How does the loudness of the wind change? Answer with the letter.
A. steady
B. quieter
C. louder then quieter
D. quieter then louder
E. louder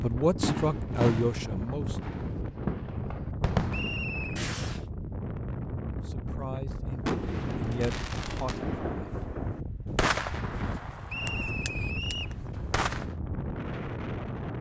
A.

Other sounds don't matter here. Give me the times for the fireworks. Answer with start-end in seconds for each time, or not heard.
0.4-4.8, 7.0-13.2.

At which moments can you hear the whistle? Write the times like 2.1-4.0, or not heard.
3.7-4.4, 11.1-12.3.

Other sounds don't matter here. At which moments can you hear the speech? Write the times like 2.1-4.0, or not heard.
0.0-1.9, 6.0-9.2.